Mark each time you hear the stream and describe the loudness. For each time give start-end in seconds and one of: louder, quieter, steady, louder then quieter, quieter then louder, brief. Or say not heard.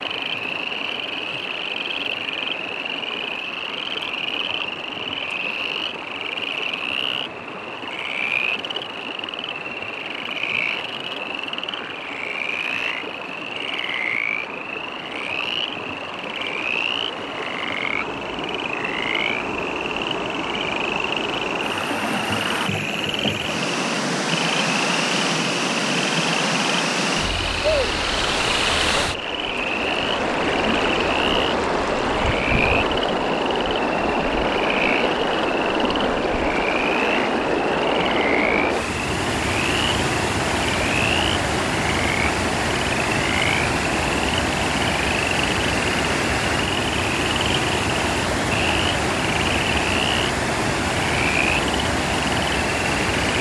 0.0-53.3 louder.